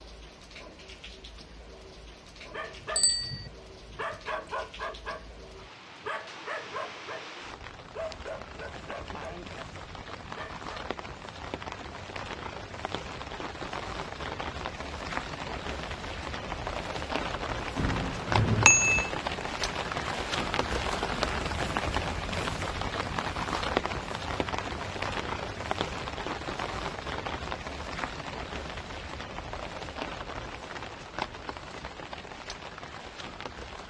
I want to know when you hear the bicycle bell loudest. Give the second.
19 s.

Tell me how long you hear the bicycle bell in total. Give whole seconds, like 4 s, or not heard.
2 s.